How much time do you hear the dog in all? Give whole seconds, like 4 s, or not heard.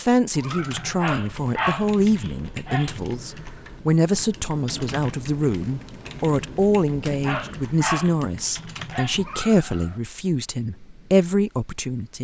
4 s.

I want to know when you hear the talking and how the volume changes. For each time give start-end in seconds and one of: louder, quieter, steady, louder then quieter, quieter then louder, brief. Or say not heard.
0.0-12.1 steady.